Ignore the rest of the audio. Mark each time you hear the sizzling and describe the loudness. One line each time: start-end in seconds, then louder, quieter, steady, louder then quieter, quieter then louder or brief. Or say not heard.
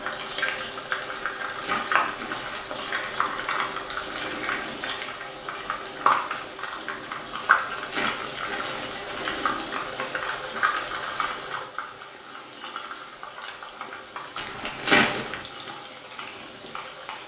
0.0-17.2 quieter.